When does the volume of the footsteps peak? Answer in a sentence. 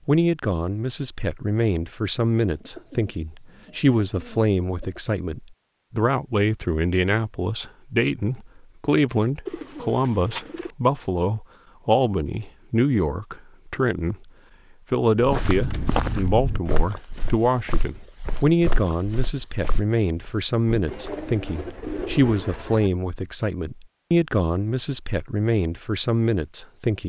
The loudest moment of the footsteps is at 16 seconds.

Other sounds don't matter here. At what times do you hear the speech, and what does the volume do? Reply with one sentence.
You can hear the speech from 0.1 to 14.3 s, at a steady volume; and from 14.9 to 27.0 s, at a steady volume.